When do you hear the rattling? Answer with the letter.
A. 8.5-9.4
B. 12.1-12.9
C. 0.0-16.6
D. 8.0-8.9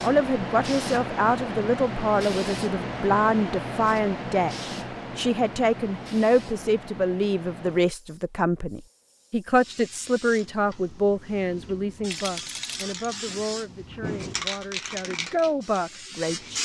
B.